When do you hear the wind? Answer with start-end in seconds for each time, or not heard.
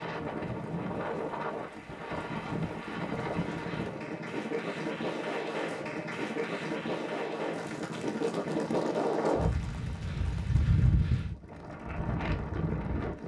0.0-13.2.